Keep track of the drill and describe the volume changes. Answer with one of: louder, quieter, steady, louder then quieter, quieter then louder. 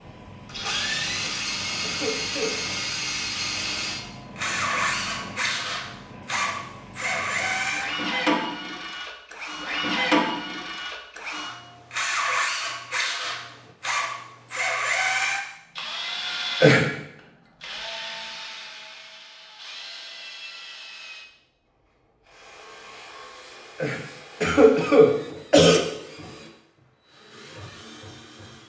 quieter.